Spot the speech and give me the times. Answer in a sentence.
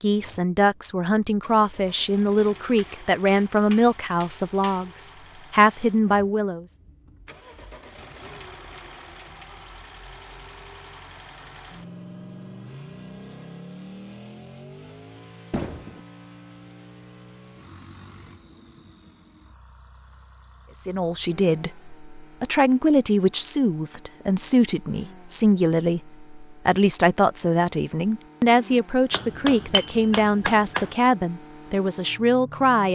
The speech can be heard from 0.0 to 6.7 s and from 20.8 to 32.9 s.